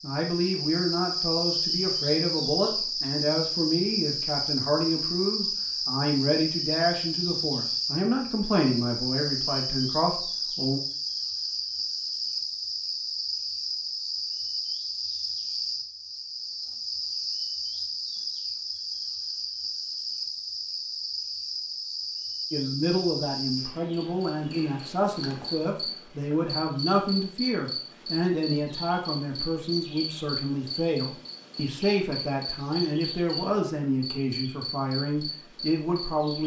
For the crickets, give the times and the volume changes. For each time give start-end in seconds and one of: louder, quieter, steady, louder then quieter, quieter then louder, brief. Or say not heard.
0.0-36.4 quieter.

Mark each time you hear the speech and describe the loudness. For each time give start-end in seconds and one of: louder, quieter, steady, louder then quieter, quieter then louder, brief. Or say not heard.
0.0-10.8 steady
22.5-36.4 steady.